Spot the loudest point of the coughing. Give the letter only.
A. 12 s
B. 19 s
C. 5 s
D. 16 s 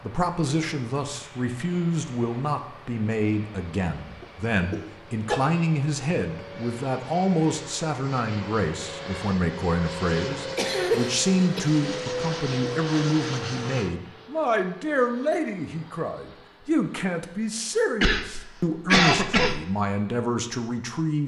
B.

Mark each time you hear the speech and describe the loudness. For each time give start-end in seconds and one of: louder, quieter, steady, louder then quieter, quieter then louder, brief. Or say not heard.
0.0-21.2 steady.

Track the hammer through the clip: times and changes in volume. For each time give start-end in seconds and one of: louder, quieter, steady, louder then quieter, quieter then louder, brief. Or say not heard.
not heard.